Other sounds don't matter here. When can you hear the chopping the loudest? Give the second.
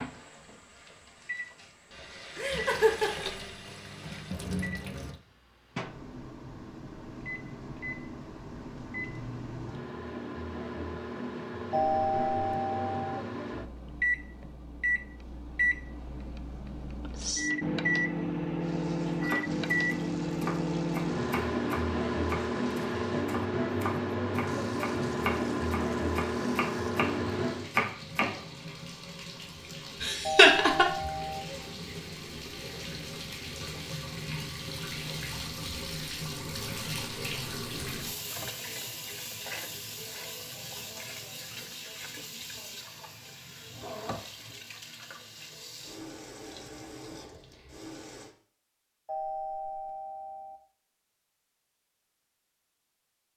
28 s.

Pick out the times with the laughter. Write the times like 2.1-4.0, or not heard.
2.4-3.2, 30.0-30.9.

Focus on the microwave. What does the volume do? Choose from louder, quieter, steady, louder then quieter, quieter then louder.
louder.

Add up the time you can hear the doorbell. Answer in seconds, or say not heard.
4 s.